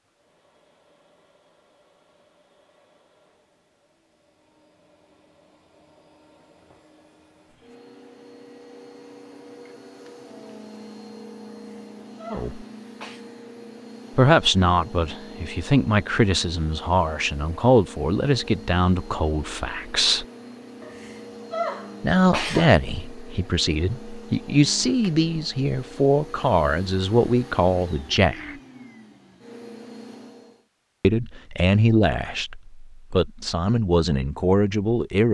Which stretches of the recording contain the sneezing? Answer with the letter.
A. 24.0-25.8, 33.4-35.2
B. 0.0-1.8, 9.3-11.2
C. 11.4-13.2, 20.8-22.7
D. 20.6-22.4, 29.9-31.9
C.